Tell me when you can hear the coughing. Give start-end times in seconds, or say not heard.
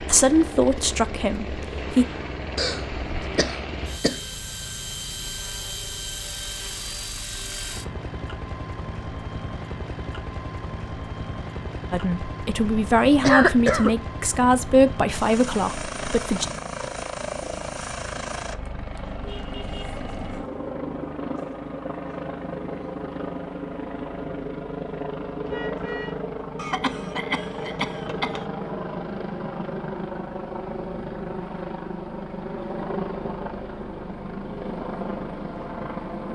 2.5-4.2, 13.2-13.9, 26.6-28.4.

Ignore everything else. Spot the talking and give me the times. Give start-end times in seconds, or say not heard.
0.0-2.0, 11.9-16.4.